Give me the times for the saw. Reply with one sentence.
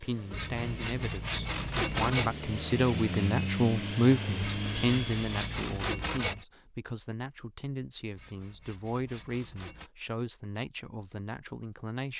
You can hear the saw from 0.3 to 2.4 s, from 4.4 to 6.5 s and from 8.2 to 9.9 s.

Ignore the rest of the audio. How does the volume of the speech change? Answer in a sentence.
The volume of the speech goes up, then down.